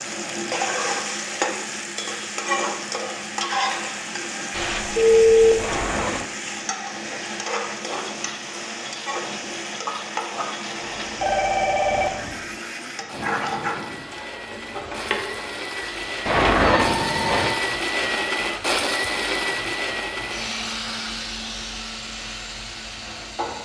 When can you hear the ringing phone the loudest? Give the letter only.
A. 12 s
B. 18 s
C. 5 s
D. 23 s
C.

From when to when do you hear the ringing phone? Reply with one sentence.
The ringing phone can be heard from 4.5 to 5.8 s, from 11.2 to 12.1 s and from 16.8 to 17.5 s.